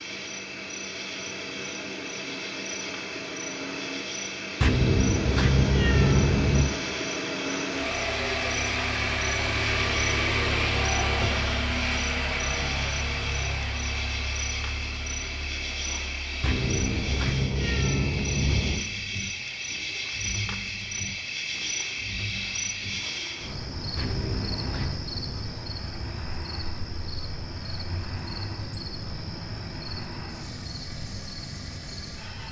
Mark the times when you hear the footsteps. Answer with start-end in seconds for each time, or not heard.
not heard.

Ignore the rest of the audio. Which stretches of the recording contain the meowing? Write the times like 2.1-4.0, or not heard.
4.6-6.7, 16.4-18.9, 23.9-24.9.